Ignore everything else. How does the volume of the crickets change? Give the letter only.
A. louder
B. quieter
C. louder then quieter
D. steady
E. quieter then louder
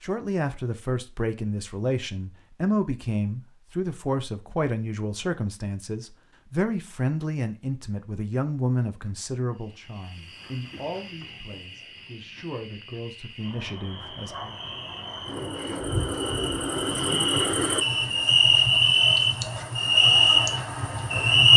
A.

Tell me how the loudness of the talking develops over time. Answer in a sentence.
The volume of the talking goes down.